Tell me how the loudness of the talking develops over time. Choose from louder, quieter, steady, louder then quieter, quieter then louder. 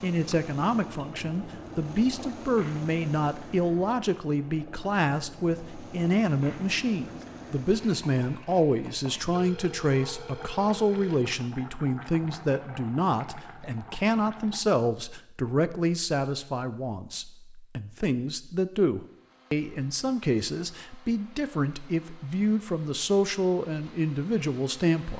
steady.